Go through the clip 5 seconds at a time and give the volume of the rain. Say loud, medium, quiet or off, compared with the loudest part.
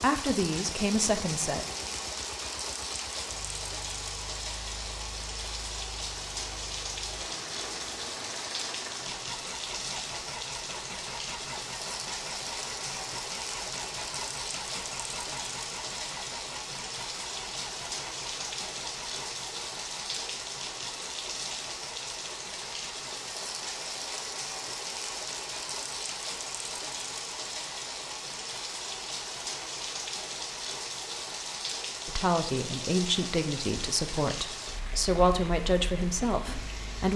loud, loud, loud, loud, loud, loud, loud, medium.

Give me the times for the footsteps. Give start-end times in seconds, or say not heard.
not heard.